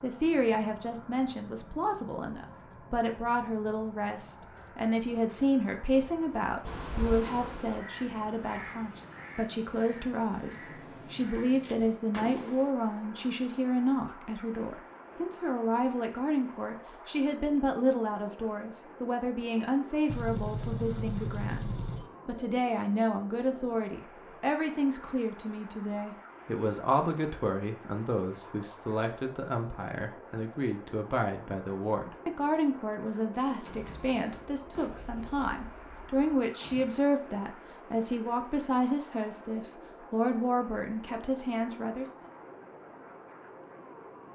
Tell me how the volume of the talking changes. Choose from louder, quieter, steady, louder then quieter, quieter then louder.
steady.